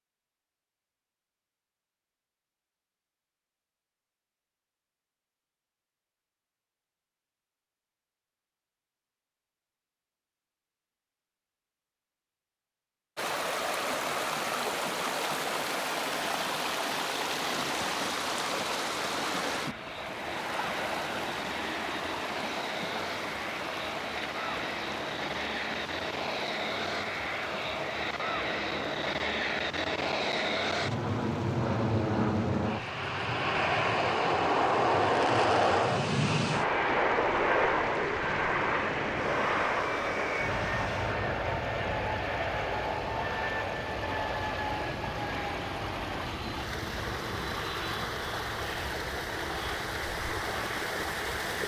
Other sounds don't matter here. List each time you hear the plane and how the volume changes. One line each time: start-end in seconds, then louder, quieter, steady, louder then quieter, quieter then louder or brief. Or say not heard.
17.6-51.6 louder then quieter.